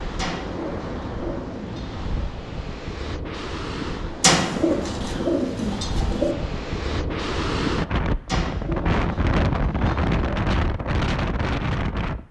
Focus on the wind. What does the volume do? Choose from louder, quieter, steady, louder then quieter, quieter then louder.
louder.